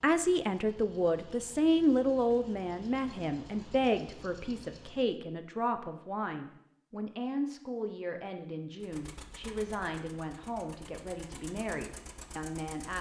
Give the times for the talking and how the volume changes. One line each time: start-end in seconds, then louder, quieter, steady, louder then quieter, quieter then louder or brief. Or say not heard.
0.0-12.9 quieter.